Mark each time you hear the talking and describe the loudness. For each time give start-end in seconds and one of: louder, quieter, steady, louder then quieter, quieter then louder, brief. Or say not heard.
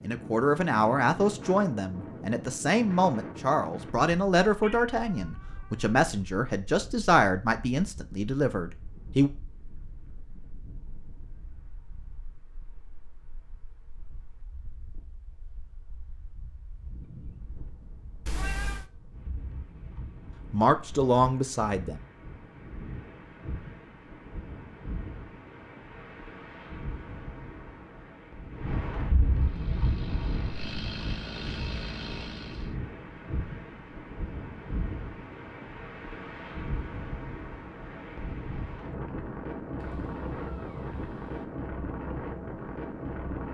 0.0-9.3 steady
20.5-22.0 brief.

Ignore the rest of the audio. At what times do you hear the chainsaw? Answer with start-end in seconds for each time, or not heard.
29.4-32.8.